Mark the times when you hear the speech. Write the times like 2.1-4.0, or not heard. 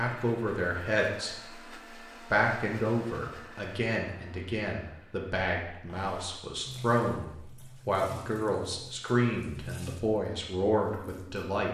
0.0-1.5, 2.3-11.7.